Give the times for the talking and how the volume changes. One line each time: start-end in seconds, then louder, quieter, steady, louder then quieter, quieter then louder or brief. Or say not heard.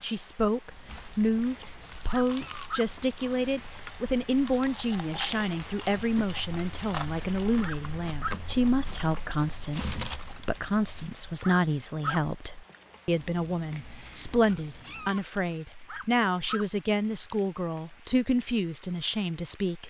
0.0-19.8 steady.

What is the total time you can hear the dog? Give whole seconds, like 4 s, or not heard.
3 s.